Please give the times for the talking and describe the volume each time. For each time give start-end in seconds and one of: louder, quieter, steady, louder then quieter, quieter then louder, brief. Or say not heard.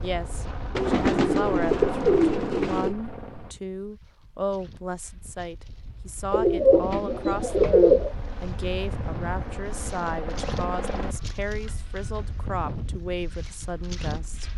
0.0-14.5 steady.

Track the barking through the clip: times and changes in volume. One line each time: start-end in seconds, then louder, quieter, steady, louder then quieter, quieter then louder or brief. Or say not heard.
not heard.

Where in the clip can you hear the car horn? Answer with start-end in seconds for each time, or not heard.
not heard.